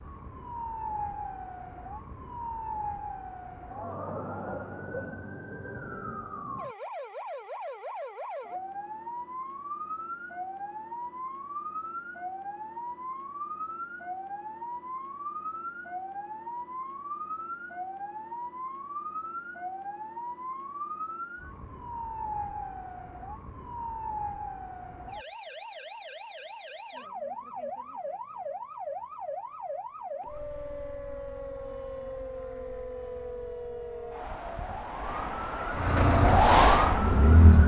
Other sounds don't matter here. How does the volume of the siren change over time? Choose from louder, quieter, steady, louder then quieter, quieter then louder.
louder.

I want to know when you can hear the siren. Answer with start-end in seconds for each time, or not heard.
0.0-37.6.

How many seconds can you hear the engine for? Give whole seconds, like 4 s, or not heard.
2 s.